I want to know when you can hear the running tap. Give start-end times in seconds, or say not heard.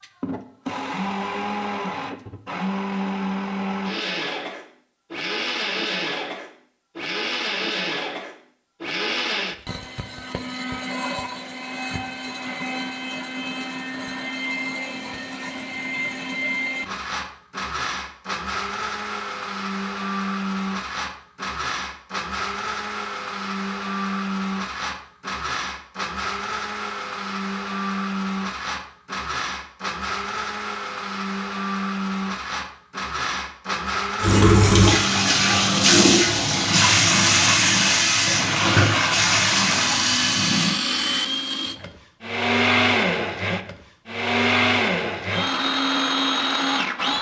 34.2-40.8.